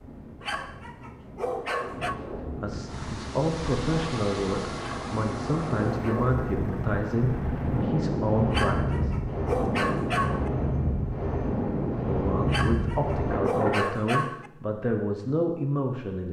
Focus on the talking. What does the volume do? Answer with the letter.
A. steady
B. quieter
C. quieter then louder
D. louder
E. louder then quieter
A.